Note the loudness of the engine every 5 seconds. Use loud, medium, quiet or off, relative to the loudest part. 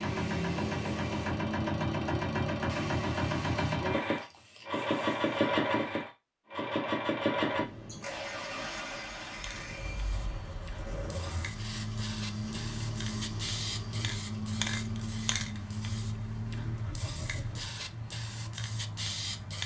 loud, loud, medium, medium.